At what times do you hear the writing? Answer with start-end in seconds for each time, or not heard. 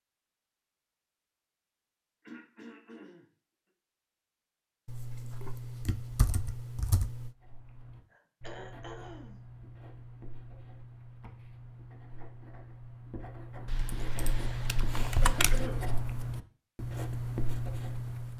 7.3-18.3.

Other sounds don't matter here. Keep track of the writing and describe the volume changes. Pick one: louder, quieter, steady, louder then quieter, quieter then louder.
louder.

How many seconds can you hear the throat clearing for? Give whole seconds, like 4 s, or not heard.
3 s.